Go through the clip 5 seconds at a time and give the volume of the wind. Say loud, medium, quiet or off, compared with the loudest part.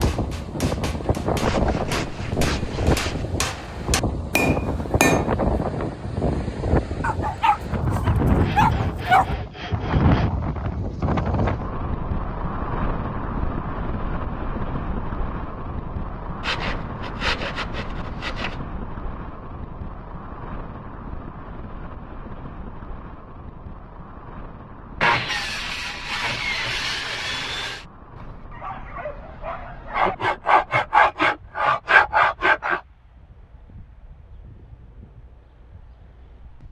loud, loud, loud, medium, quiet, quiet, quiet, quiet.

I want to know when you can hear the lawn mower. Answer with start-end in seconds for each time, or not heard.
not heard.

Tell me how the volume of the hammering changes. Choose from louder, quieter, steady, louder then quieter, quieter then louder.
louder.